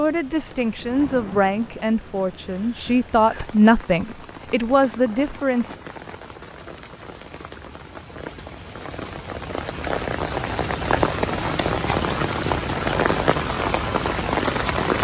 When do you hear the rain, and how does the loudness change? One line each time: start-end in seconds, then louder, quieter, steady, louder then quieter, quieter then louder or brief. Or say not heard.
0.0-14.9 louder.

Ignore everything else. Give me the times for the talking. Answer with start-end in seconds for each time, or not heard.
0.0-5.8.